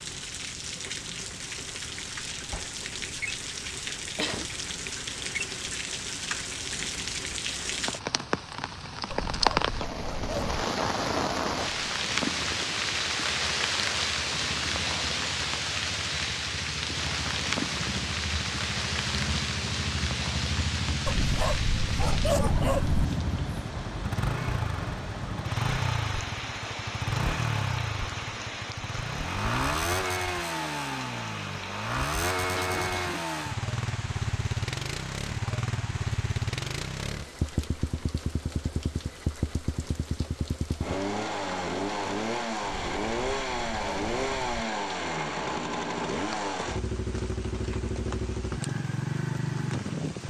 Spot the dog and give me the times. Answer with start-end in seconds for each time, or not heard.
9.1-10.7, 21.1-23.1, 42.6-44.6.